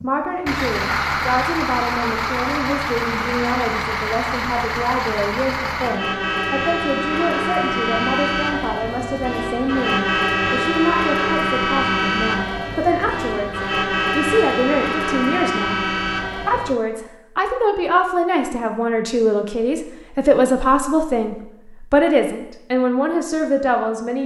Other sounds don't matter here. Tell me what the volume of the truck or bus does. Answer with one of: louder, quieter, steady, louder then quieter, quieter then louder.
steady.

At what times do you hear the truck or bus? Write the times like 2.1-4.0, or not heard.
0.0-16.8.